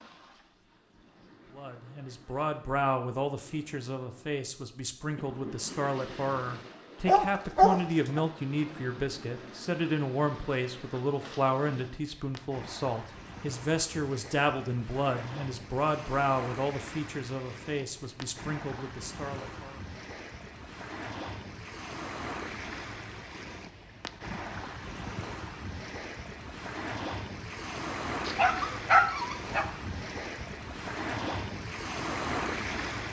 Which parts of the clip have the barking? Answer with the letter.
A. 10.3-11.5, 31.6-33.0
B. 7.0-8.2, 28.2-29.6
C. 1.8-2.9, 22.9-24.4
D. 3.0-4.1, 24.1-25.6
B.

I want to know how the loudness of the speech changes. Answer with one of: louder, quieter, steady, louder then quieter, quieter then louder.
steady.